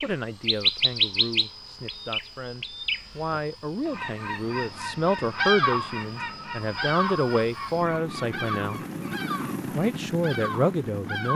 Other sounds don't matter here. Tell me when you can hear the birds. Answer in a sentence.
The birds can be heard from 0.0 to 11.3 s.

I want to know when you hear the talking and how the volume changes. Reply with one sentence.
The talking can be heard from 0.0 to 8.8 s, getting louder; and briefly from 9.7 to 11.3 s.